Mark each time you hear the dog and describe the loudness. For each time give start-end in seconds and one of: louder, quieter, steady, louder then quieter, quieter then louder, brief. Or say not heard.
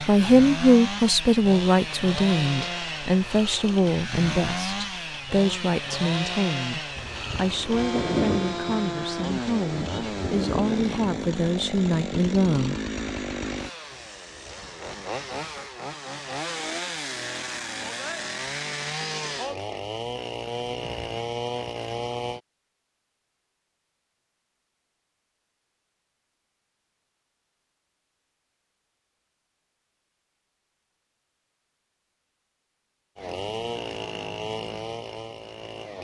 not heard.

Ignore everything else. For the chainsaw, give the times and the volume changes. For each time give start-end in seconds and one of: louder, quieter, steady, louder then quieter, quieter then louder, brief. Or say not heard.
0.0-22.4 steady
33.1-35.9 brief.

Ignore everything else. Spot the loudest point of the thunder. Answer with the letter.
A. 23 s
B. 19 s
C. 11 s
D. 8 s
D.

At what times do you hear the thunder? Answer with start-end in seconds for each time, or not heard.
7.0-11.3.